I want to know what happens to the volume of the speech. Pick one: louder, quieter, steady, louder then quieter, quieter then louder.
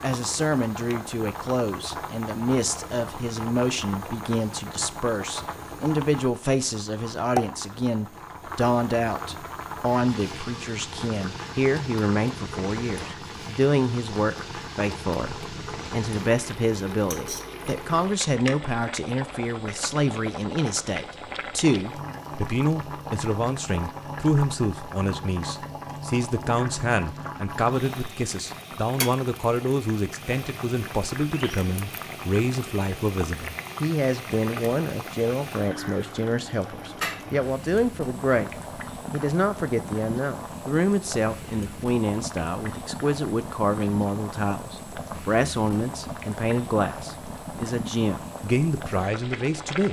steady.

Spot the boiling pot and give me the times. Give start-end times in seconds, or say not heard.
0.0-49.8.